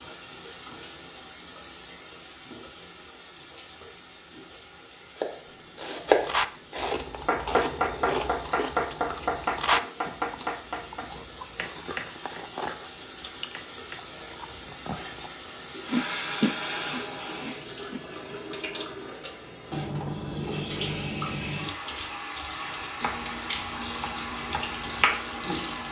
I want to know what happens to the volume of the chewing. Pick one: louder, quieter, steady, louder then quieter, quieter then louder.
quieter then louder.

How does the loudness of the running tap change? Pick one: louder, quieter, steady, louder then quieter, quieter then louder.
louder.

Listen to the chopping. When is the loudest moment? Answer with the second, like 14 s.
6 s.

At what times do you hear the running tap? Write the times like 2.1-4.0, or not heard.
0.0-25.8.